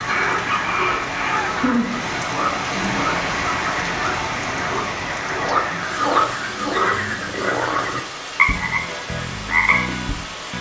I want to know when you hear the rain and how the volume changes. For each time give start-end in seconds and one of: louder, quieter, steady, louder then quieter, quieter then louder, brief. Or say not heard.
0.0-10.5 quieter.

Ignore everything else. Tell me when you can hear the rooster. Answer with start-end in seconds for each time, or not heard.
0.1-1.6.